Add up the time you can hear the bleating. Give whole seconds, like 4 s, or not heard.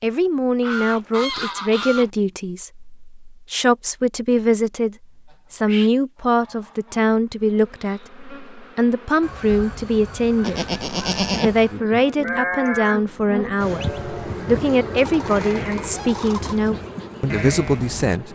8 s.